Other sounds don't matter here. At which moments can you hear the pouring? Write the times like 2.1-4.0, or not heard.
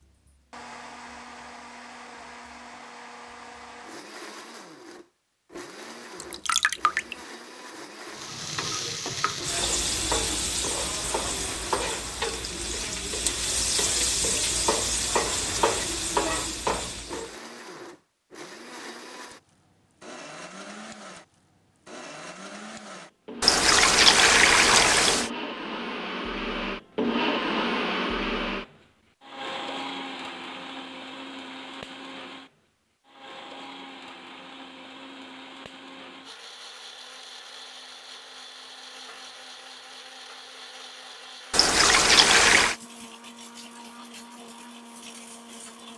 6.2-7.2, 23.4-25.3, 41.5-42.8.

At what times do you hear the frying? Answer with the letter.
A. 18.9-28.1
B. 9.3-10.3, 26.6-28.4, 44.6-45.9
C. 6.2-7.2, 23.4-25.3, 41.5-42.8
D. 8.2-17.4
D.